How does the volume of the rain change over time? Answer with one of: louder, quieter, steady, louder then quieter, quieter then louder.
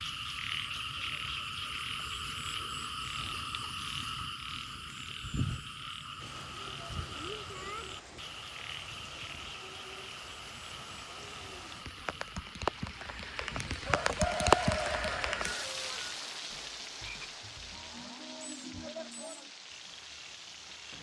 louder then quieter.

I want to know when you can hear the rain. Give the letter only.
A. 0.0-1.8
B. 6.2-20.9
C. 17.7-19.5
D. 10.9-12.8
B.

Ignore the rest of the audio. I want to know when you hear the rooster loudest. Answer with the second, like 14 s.
14 s.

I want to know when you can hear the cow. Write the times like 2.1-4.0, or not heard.
17.7-19.5.